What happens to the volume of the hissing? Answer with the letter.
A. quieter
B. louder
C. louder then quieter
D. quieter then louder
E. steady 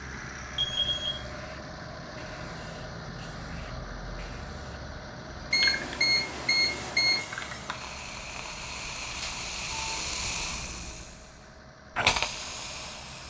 B.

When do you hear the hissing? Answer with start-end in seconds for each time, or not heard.
0.2-13.2.